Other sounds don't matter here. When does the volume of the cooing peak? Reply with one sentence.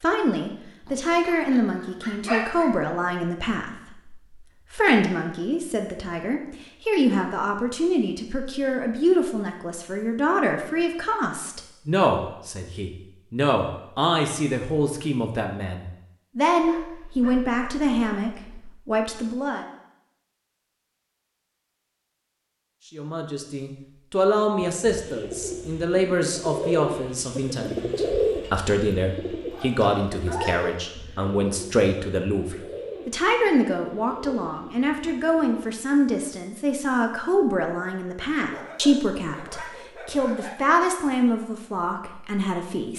The volume of the cooing peaks at 28 seconds.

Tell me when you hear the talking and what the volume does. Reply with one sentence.
You can hear the talking from 0.0 to 19.6 s, at a steady volume; and from 22.9 to 42.9 s, at a steady volume.